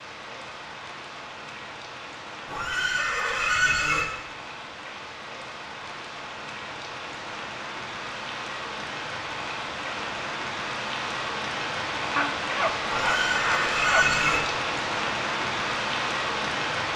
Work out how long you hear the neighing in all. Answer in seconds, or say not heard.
3 s.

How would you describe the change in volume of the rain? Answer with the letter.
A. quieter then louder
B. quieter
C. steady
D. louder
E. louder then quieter
D.